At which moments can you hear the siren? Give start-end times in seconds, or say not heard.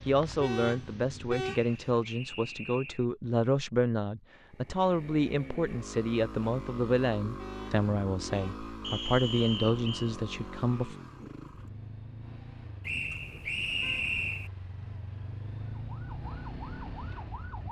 15.8-17.6.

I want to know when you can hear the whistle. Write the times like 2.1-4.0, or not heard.
1.6-3.0, 8.8-10.2, 12.8-14.5.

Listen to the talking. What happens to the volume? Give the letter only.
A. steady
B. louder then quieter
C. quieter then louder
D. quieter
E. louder
A.